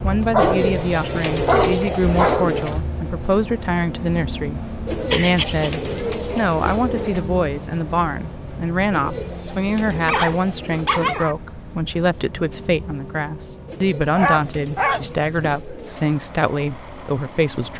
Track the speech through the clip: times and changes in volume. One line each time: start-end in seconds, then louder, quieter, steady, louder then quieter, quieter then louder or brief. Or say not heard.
0.0-17.7 steady.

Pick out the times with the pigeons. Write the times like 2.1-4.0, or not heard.
0.3-2.8, 4.8-7.3, 8.9-11.3, 13.7-16.1.